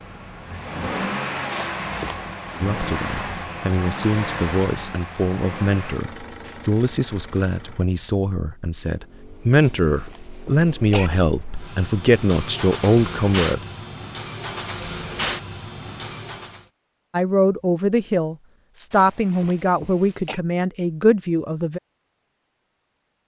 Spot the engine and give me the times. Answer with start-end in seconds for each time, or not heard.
0.0-16.6.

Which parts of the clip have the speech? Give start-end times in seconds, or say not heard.
2.6-13.6, 17.1-21.8.